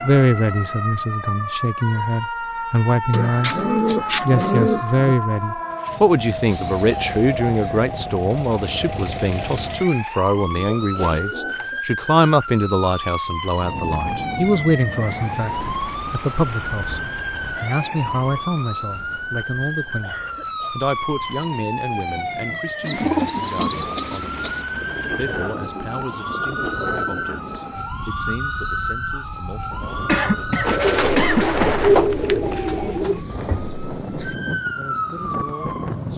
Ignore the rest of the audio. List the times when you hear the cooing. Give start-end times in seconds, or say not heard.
3.1-5.2, 10.5-11.8, 22.8-24.6, 30.6-33.2.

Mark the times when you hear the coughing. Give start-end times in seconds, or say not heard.
6.4-7.9, 20.0-20.9, 29.6-31.8.